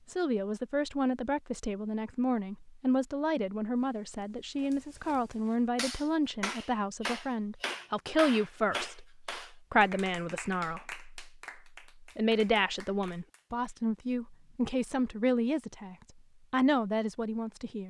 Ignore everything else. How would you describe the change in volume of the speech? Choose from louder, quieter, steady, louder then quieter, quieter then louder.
steady.